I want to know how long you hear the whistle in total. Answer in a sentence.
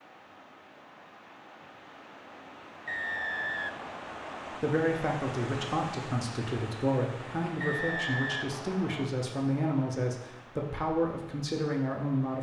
You can hear the whistle for 3 seconds altogether.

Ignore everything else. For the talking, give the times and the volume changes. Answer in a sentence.
You can hear the talking from 4.6 to 12.3 s, at a steady volume.